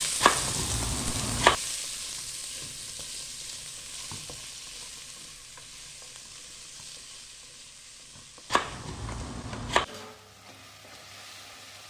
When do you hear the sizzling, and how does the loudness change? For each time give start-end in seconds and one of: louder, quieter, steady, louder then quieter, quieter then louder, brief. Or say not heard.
0.0-11.8 quieter.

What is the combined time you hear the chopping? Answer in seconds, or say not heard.
3 s.